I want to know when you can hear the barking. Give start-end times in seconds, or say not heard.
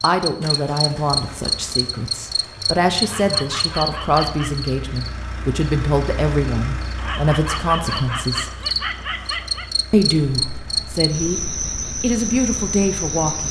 3.0-4.7, 7.0-9.7.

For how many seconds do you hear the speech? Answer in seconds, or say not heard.
12 s.